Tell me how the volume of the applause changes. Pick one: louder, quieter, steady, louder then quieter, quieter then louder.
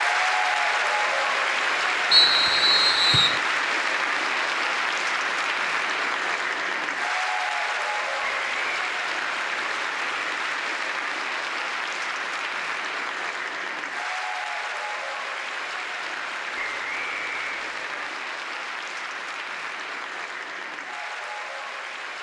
quieter.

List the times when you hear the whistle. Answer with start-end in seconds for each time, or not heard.
2.1-3.4, 8.2-8.8, 16.6-18.1.